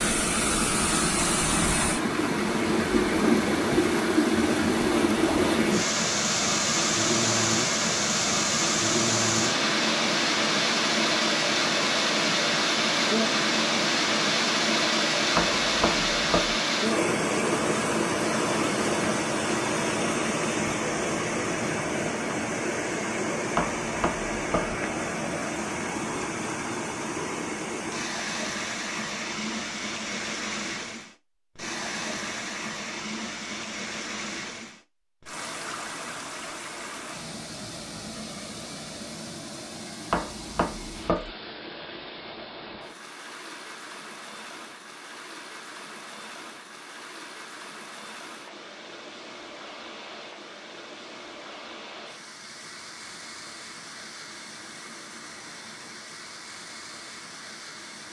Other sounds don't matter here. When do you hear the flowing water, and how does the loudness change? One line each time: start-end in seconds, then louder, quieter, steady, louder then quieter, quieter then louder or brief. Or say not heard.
0.0-58.0 quieter.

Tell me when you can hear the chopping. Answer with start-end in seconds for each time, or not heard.
15.3-16.6, 23.6-24.8, 40.1-41.3.